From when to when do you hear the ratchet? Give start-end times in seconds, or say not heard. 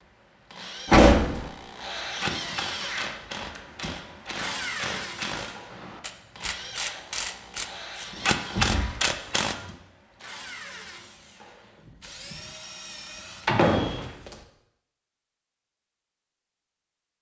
2.0-9.7.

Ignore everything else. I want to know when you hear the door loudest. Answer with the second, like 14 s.
1 s.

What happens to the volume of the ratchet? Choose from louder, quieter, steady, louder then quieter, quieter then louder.
louder.